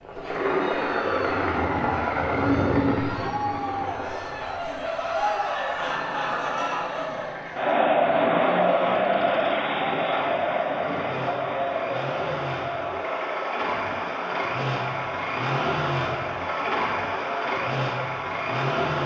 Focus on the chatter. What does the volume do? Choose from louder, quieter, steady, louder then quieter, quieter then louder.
louder then quieter.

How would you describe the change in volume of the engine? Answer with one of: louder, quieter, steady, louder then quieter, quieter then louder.
quieter then louder.